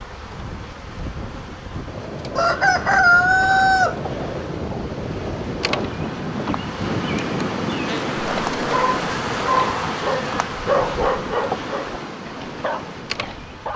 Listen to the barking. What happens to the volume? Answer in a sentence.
The volume of the barking goes down.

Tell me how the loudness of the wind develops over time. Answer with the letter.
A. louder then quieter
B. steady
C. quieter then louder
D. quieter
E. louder
A.